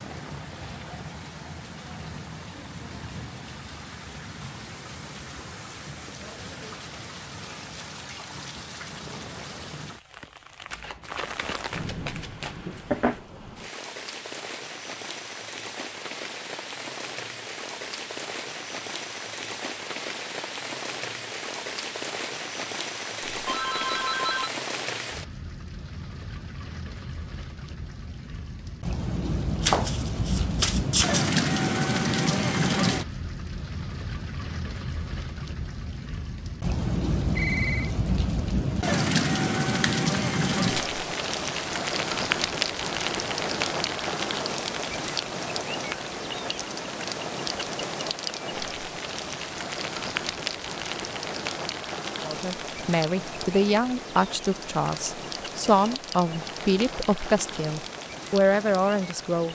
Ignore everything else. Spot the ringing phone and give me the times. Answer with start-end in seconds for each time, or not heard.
23.4-24.5, 37.2-37.9.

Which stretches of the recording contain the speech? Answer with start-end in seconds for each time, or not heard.
52.2-59.5.